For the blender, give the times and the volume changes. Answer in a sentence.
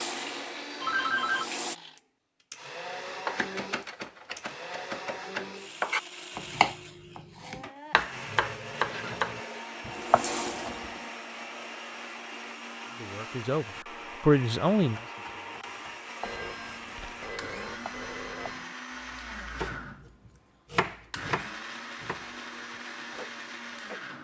You can hear the blender from 0.0 to 24.2 s, at a steady volume.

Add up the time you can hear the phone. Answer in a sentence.
The phone can be heard for 4 seconds in total.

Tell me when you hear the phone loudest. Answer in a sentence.
The volume of the phone peaks at 1 second.